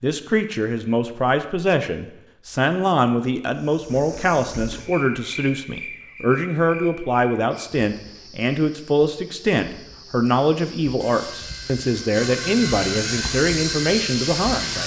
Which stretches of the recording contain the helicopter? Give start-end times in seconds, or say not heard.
10.9-14.8.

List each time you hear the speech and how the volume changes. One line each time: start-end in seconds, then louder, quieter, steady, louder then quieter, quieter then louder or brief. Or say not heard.
0.0-14.8 steady.